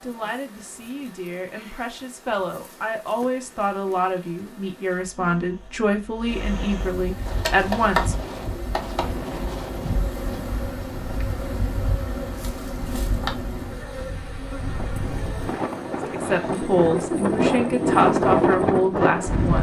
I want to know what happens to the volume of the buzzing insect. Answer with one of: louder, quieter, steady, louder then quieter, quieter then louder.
louder then quieter.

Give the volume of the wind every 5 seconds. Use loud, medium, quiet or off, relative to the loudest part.
off, quiet, quiet, loud.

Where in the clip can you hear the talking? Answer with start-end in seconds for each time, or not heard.
0.0-8.2, 16.1-19.5.